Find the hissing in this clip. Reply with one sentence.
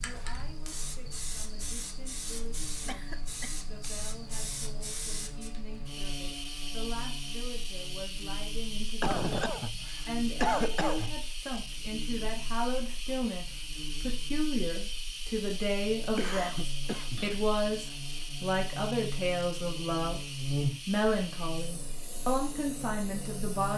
You can hear the hissing from 0.0 to 23.7 s.